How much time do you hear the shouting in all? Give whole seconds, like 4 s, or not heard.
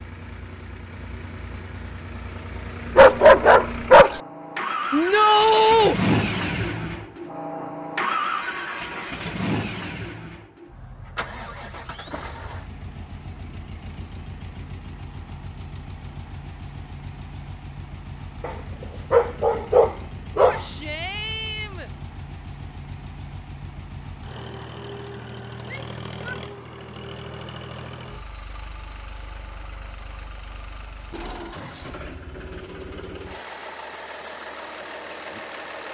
3 s.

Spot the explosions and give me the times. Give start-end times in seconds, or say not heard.
not heard.